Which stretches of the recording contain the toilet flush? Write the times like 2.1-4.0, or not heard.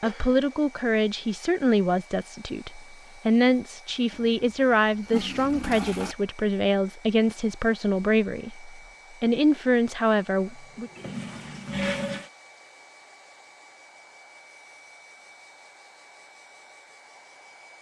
4.1-6.2, 10.9-12.3.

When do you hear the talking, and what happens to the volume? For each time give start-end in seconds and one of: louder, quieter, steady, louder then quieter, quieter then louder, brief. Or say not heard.
0.0-10.9 steady.